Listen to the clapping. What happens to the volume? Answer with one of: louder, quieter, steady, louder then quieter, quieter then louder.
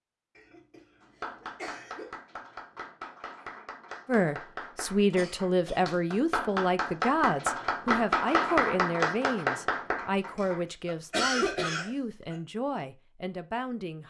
louder.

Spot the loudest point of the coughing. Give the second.
11 s.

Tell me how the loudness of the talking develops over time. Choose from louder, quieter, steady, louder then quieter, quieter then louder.
quieter.